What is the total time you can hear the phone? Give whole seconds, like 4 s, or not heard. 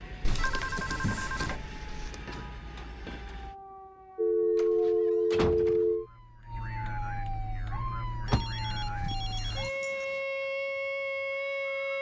5 s.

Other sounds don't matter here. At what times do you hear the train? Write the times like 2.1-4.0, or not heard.
0.0-3.5.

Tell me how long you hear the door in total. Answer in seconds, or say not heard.
5 s.